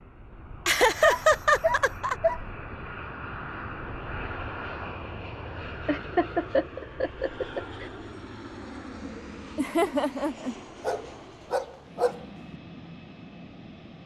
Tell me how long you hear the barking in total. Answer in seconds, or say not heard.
3 s.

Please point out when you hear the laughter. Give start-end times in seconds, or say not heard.
0.7-2.1, 5.8-7.9, 9.6-10.6.